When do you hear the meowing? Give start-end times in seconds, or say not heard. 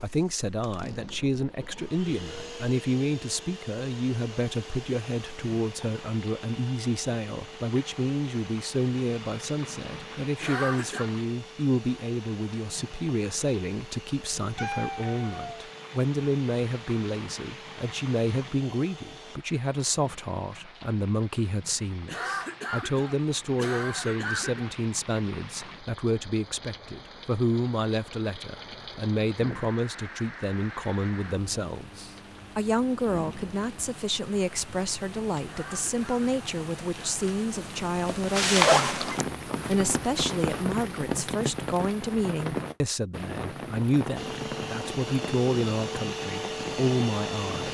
14.6-15.7, 38.8-39.3.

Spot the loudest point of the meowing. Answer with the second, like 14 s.
15 s.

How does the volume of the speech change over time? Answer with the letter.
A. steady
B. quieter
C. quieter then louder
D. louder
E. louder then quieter
A.